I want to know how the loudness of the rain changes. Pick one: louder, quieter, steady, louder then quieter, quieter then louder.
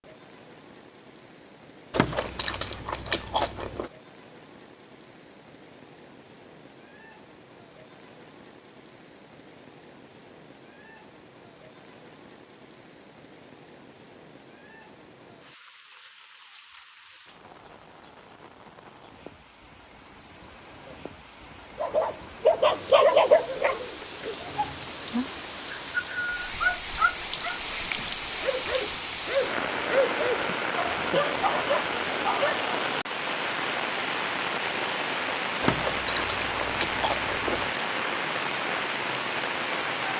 louder.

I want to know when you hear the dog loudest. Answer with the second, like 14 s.
23 s.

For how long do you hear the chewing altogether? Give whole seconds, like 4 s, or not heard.
4 s.